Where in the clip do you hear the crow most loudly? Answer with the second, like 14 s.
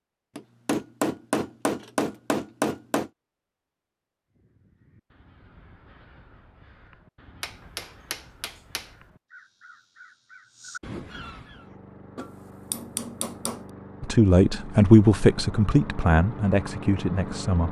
11 s.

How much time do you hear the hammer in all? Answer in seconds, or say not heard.
6 s.